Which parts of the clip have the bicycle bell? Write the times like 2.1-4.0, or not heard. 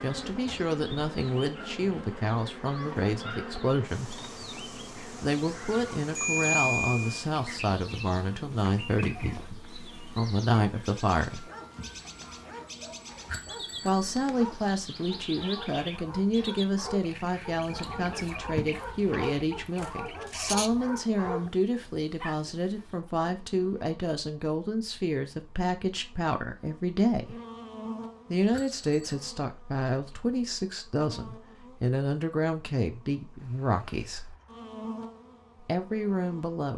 6.2-7.2, 13.2-14.2, 28.5-29.1.